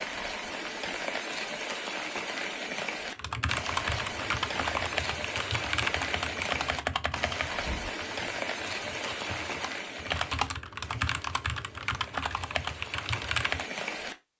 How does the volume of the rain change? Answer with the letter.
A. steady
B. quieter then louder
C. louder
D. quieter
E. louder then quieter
D.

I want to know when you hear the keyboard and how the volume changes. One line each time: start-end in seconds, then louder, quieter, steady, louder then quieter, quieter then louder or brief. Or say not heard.
3.1-13.7 quieter then louder.